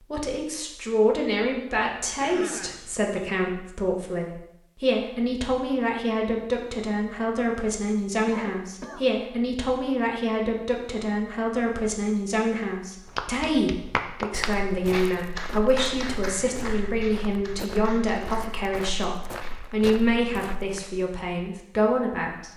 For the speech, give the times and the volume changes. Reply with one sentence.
The speech can be heard from 0.1 to 22.5 s, at a steady volume.